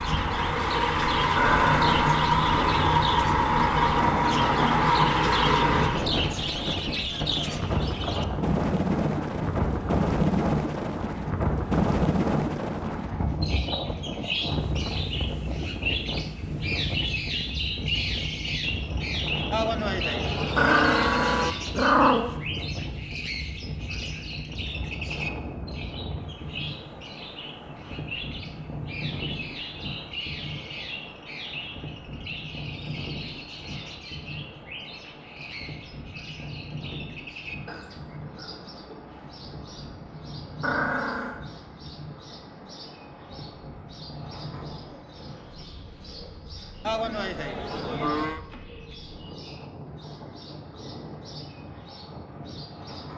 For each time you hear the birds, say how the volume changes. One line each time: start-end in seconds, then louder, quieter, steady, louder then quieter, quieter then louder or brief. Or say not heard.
0.0-53.1 quieter.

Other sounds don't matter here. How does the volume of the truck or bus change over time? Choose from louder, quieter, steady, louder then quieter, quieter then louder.
steady.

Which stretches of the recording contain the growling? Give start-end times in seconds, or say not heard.
1.4-2.7, 20.6-22.4, 40.6-41.4.